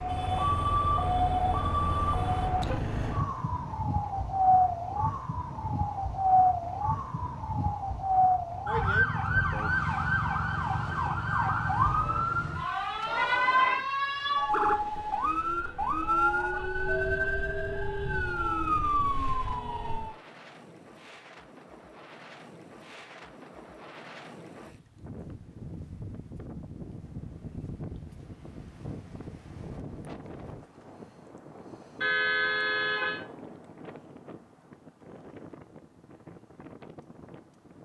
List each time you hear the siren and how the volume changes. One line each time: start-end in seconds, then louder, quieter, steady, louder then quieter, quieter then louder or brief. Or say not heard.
0.0-20.1 steady.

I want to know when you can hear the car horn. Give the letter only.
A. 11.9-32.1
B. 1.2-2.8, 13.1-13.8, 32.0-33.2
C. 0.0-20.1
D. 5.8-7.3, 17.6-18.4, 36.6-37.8
B.